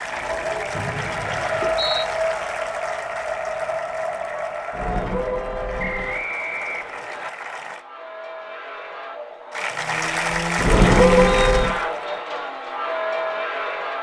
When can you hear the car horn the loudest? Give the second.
11 s.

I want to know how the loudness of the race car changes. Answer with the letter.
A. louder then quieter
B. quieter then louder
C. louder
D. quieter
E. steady
B.